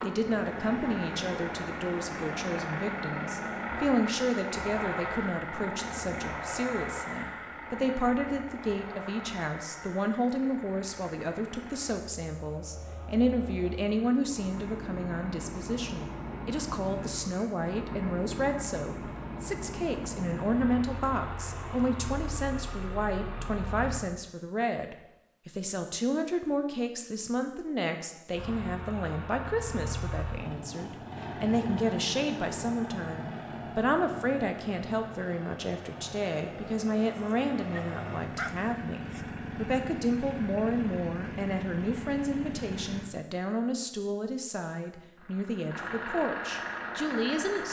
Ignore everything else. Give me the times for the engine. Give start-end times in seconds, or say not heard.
0.0-24.1, 28.3-43.0, 45.1-47.6.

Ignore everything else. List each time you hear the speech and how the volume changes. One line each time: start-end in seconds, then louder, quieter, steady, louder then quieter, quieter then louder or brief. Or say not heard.
0.0-47.6 steady.